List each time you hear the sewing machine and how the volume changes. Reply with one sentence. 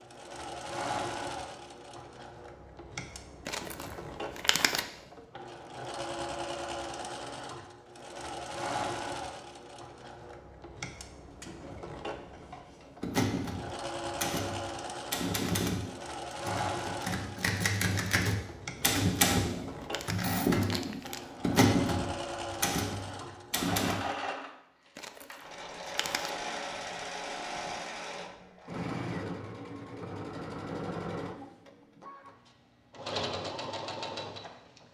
You can hear the sewing machine from 0.0 to 34.8 s, at a steady volume.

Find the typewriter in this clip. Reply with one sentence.
The typewriter can be heard from 12.8 to 23.9 s.